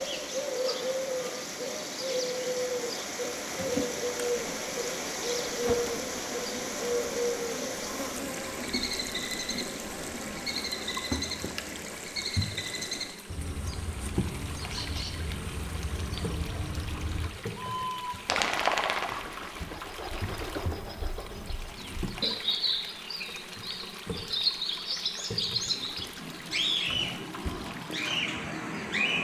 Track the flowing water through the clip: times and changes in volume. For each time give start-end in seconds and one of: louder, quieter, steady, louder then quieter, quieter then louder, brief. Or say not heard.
0.0-29.1 quieter.